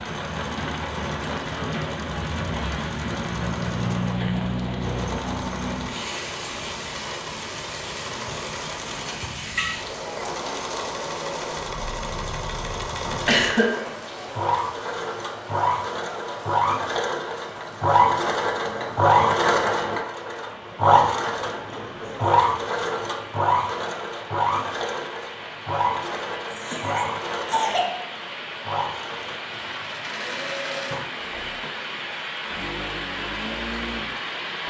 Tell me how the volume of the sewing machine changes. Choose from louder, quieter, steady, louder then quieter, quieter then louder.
louder then quieter.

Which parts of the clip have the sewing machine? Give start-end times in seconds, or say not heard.
0.0-34.6.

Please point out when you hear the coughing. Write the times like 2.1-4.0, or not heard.
13.2-14.2, 26.5-28.0.